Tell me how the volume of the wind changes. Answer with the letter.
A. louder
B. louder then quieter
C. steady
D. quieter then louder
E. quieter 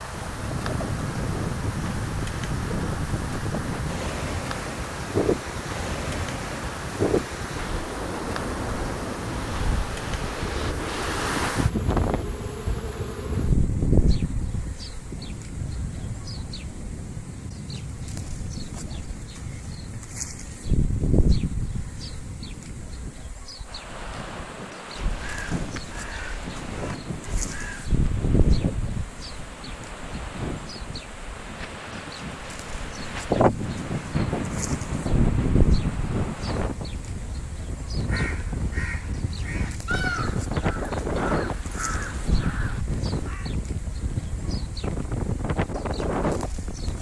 D.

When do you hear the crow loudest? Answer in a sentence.
The loudest moment of the crow is at 40 seconds.